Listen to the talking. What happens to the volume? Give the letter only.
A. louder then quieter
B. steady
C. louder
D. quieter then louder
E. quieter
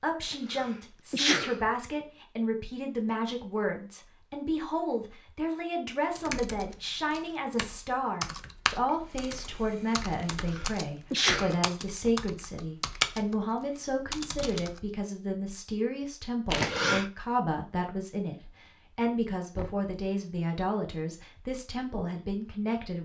B.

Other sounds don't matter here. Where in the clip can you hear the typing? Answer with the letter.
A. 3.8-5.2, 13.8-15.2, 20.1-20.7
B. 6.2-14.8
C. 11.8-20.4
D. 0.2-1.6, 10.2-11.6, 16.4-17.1
B.